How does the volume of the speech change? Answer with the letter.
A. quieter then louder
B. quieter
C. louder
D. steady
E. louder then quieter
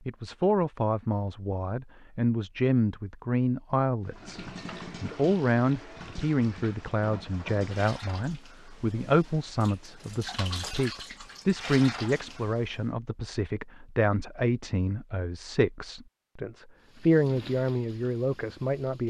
D.